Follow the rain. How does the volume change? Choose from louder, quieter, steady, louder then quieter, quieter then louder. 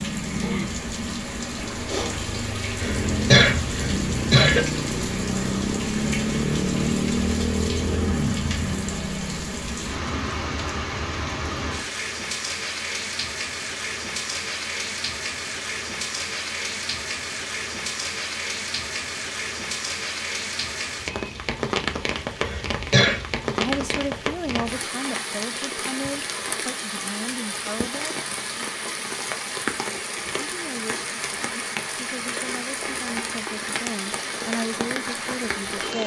steady.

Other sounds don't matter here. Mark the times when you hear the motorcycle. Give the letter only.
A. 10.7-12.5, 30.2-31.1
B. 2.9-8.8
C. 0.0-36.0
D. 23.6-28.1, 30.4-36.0
B.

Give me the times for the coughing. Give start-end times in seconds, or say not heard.
2.8-4.7, 22.4-23.2.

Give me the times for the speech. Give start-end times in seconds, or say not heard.
23.6-28.1, 30.4-36.0.